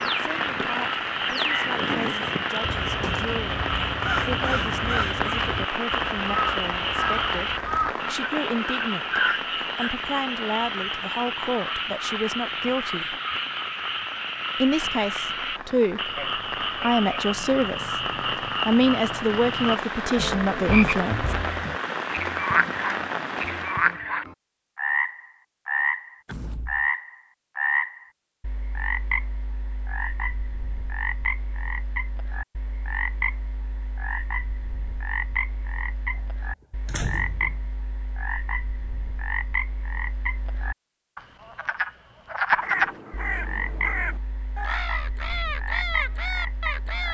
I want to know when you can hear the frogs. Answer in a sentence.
The frogs can be heard from 0.0 to 47.1 s.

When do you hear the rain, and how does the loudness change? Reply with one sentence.
The rain can be heard from 0.0 to 24.0 s, getting quieter then louder.